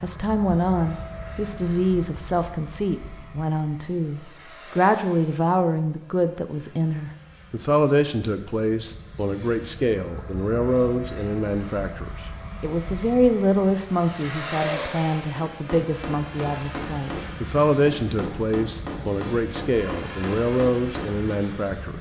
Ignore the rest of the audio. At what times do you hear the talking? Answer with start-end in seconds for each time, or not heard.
0.0-21.9.